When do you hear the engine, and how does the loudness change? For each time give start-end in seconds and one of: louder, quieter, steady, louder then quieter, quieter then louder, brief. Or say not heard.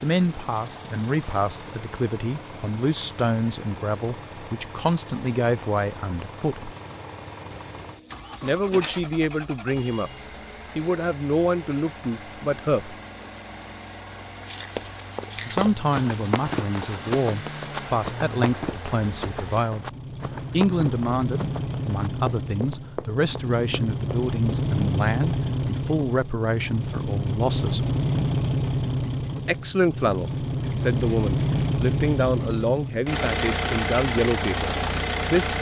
0.0-35.5 louder.